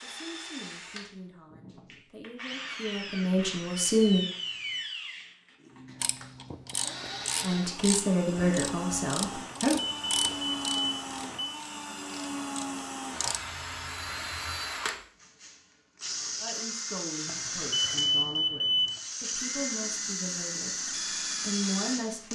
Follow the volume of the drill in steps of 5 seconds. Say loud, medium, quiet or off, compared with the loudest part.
medium, medium, loud, loud, loud.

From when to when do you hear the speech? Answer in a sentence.
The speech can be heard from 0.0 to 4.2 s, from 7.4 to 9.8 s and from 16.4 to 22.2 s.